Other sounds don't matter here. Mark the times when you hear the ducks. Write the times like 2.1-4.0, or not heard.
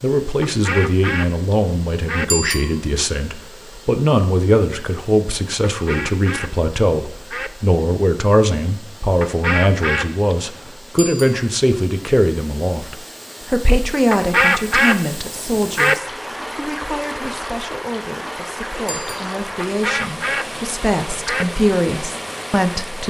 0.4-2.2, 5.7-7.5, 9.2-10.8, 14.1-15.9, 19.6-21.4.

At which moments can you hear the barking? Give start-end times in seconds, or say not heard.
not heard.